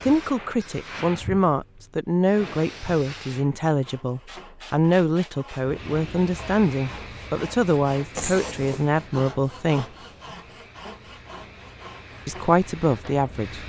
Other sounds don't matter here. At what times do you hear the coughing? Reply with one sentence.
The coughing can be heard from 8.2 to 8.9 s.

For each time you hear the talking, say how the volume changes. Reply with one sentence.
You can hear the talking from 0.0 to 9.8 s, at a steady volume; and briefly from 12.2 to 13.6 s.